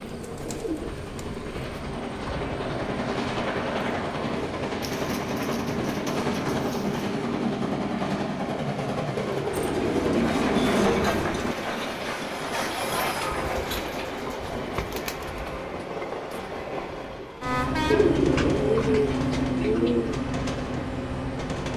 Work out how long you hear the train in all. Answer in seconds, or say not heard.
22 s.